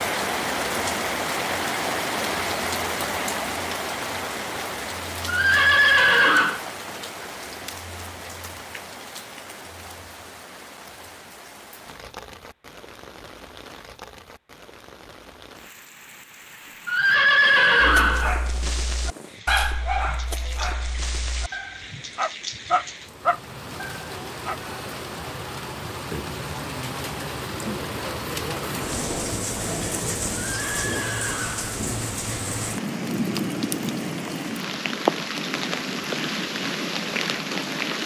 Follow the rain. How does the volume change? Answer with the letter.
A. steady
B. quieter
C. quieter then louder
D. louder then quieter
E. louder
C.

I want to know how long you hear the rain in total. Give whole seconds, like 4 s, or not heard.
38 s.